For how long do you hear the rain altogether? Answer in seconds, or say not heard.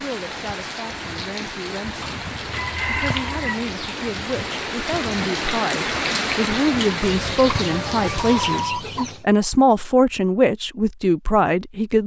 9 s.